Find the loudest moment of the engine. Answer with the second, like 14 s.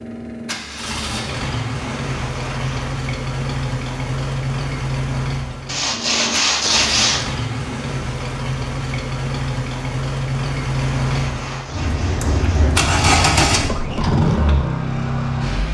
13 s.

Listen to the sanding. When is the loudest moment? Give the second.
7 s.